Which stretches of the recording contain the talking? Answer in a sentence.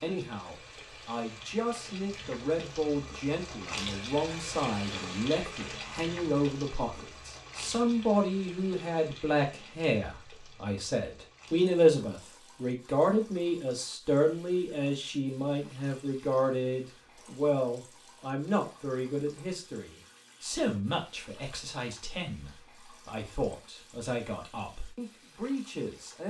The talking can be heard from 0.0 to 26.2 s.